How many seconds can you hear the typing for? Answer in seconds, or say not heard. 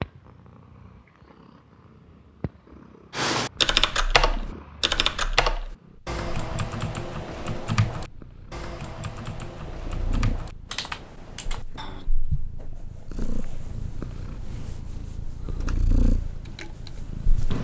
11 s.